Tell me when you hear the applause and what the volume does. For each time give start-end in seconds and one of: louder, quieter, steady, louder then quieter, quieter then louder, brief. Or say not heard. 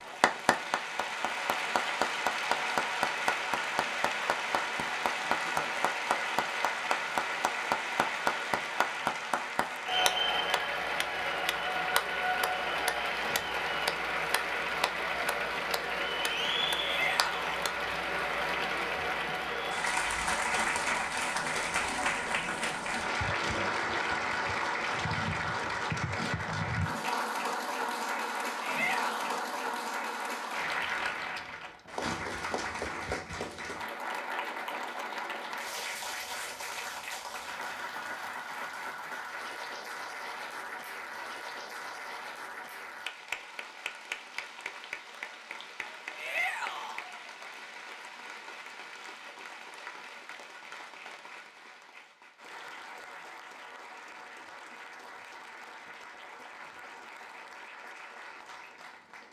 0.0-59.2 quieter.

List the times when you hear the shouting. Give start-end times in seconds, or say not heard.
16.8-17.6, 28.6-29.4, 46.1-47.0.